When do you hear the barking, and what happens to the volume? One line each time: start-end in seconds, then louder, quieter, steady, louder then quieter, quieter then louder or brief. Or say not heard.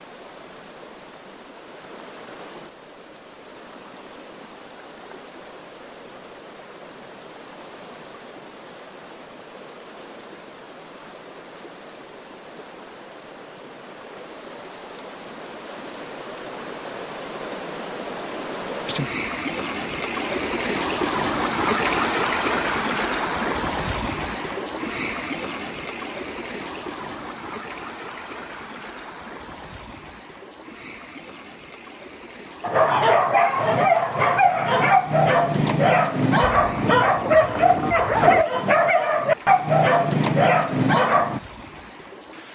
32.6-41.4 steady.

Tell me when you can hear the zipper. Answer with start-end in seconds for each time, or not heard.
36.5-38.5.